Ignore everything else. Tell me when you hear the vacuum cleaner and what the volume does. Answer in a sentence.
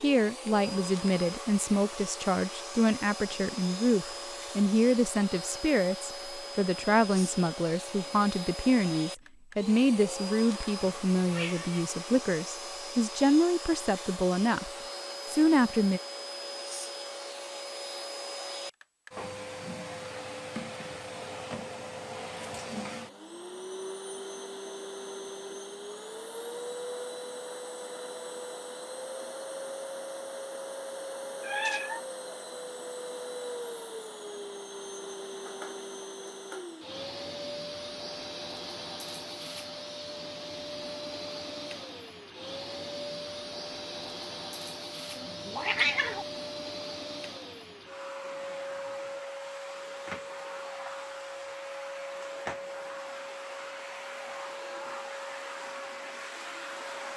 You can hear the vacuum cleaner from 0.0 to 57.1 s, at a steady volume.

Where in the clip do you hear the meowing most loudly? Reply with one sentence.
The volume of the meowing peaks at 46 seconds.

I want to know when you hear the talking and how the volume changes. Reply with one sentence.
The talking can be heard from 0.0 to 16.0 s, at a steady volume.